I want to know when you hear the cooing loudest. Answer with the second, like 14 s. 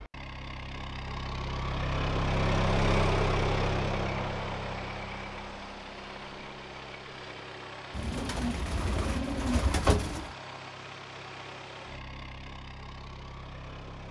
10 s.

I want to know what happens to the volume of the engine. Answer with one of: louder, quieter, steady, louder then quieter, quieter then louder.
quieter.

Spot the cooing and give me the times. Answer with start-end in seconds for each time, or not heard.
7.9-10.3.